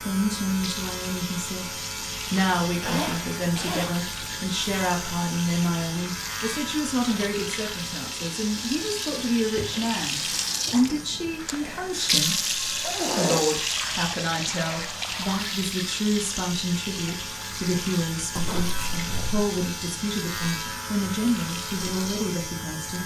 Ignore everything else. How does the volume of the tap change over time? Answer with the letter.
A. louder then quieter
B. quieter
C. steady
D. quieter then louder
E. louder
A.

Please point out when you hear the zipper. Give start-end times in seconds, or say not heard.
2.7-4.3, 12.8-13.6, 18.4-19.4.